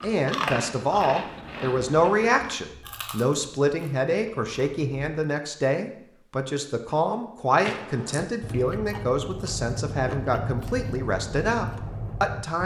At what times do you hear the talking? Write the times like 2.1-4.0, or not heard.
0.0-12.6.